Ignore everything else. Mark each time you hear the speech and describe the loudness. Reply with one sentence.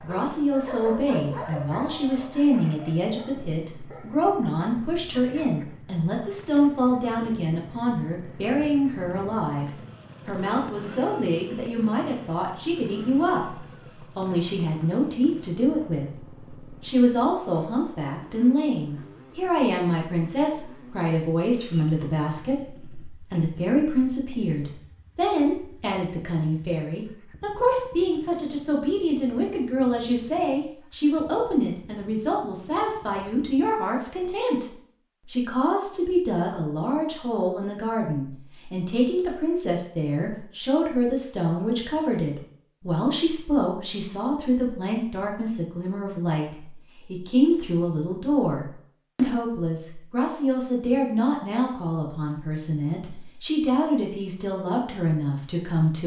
You can hear the speech from 0.0 to 56.0 s, at a steady volume.